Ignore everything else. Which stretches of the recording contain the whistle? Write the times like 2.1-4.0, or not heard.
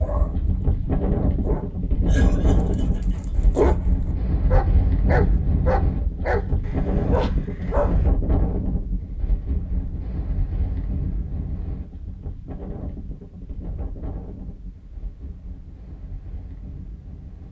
not heard.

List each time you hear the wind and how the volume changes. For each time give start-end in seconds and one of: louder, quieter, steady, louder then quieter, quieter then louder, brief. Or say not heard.
0.0-17.4 quieter.